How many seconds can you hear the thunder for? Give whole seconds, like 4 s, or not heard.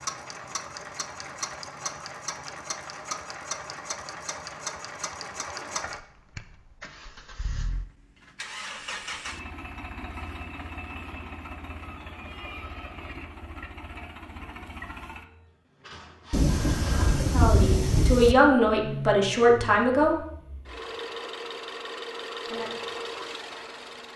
2 s.